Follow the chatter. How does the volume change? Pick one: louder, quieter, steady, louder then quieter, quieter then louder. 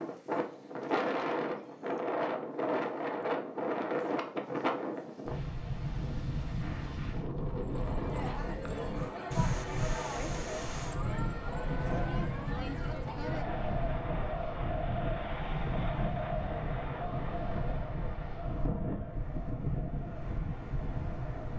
quieter.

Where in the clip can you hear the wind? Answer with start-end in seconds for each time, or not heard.
0.0-21.5.